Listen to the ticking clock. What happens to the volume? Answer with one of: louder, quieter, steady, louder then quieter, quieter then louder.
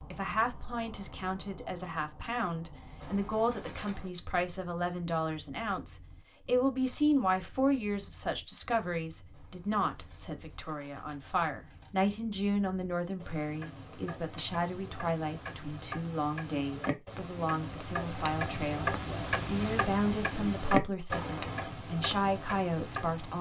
quieter then louder.